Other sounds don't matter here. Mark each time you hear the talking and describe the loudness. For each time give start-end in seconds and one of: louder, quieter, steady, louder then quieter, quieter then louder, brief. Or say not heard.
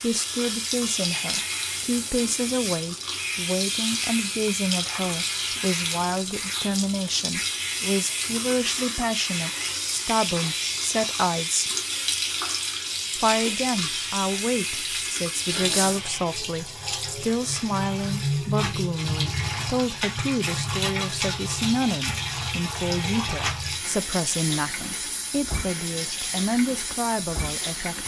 0.0-11.7 steady
13.2-28.0 steady.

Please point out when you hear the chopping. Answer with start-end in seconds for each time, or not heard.
not heard.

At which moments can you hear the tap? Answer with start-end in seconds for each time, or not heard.
0.0-28.0.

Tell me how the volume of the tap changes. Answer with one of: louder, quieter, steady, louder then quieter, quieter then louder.
steady.